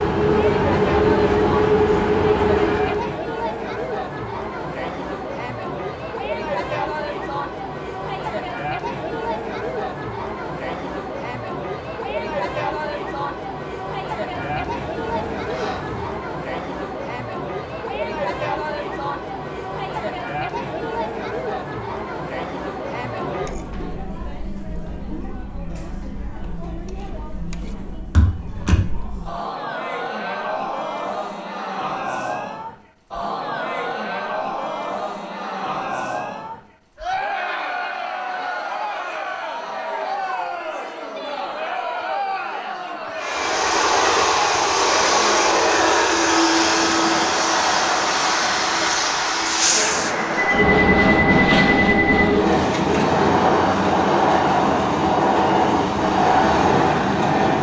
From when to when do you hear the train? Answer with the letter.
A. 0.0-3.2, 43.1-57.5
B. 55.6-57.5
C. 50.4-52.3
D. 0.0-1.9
A.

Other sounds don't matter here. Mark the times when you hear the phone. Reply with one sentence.
You can hear the phone from 50.4 to 52.3 s.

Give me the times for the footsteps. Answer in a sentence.
You can't hear the footsteps here.